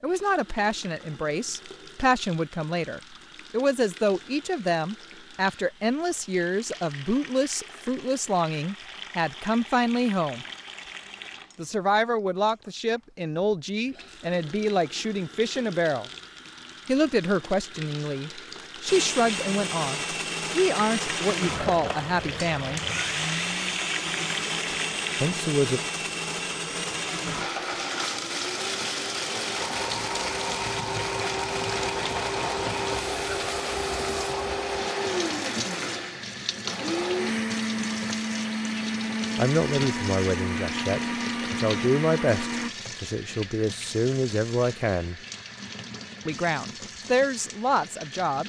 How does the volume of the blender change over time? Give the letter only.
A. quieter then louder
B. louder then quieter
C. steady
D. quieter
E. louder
C.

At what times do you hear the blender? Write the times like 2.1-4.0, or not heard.
18.9-42.7.